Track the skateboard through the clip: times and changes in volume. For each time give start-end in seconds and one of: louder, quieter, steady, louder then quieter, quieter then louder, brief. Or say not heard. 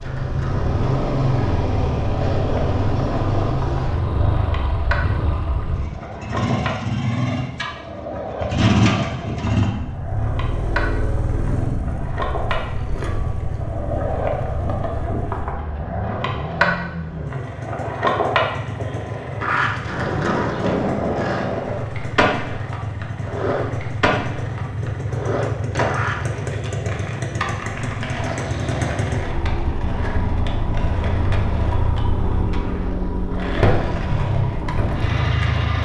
0.0-35.8 louder then quieter.